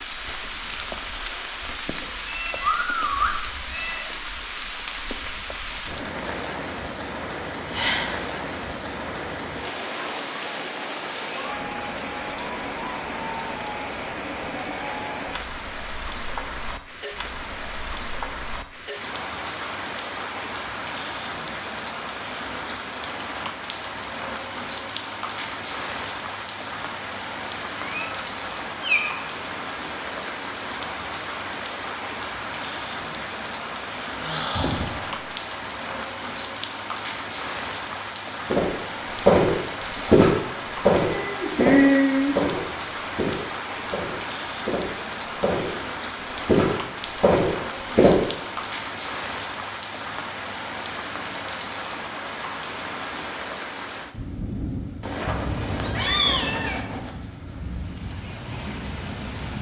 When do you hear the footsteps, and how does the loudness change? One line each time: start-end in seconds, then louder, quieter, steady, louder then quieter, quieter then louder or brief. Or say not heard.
38.5-48.2 quieter then louder.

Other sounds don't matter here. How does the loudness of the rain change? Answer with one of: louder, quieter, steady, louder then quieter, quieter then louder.
steady.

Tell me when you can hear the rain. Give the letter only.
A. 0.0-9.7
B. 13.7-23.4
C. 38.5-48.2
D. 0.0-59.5
D.